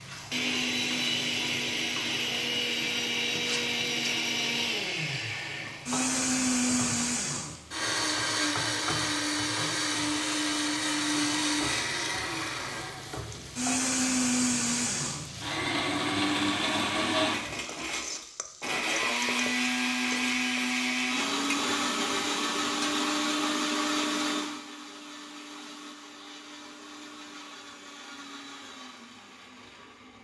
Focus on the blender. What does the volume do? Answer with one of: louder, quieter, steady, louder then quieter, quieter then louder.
quieter.